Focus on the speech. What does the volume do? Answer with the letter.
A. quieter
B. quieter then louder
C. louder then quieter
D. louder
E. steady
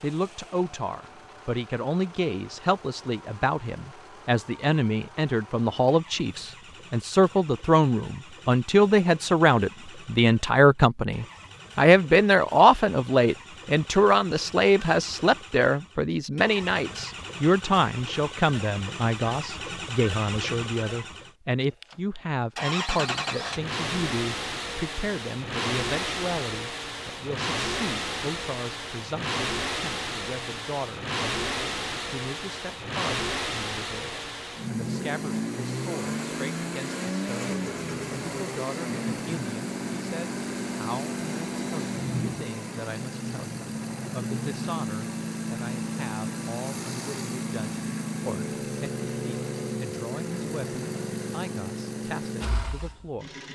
A.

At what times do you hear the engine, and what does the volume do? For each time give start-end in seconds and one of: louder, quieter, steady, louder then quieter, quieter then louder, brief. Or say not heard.
0.0-53.5 louder.